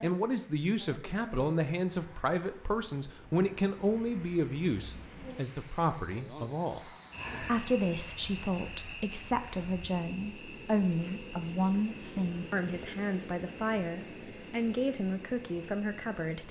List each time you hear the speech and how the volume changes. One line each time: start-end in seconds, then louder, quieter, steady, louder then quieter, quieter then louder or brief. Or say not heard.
0.0-16.4 steady.